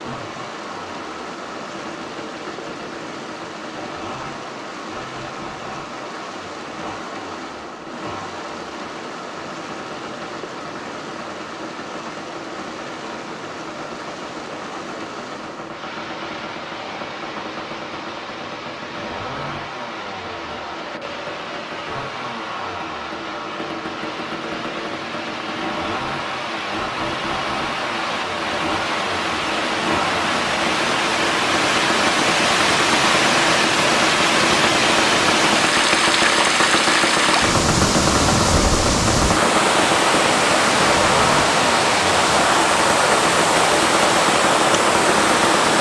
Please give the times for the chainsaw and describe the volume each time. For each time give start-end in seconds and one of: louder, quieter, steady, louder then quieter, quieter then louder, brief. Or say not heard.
0.0-45.7 louder.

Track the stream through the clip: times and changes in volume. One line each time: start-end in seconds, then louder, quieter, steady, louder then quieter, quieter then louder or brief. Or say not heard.
0.0-45.7 louder.